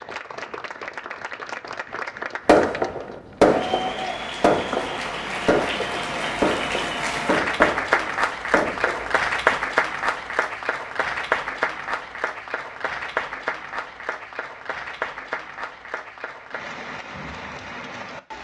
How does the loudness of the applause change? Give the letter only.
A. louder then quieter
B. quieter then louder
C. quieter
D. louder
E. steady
A.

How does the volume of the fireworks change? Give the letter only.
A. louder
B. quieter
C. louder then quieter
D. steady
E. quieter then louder
B.